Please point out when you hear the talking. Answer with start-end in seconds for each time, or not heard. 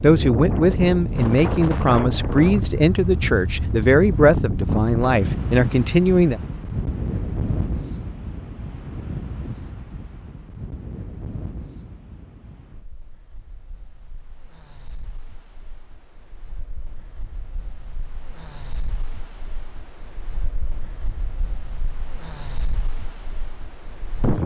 0.0-6.4.